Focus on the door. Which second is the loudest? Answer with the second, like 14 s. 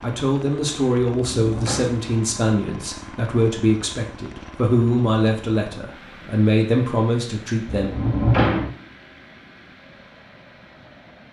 8 s.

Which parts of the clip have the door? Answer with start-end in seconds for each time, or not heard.
1.1-2.0, 7.7-8.7.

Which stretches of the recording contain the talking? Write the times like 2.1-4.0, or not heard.
0.0-7.9.